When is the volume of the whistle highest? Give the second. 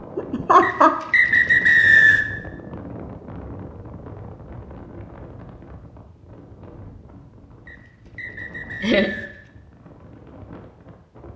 2 s.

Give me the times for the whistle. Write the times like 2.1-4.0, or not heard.
0.6-2.2, 7.7-9.4.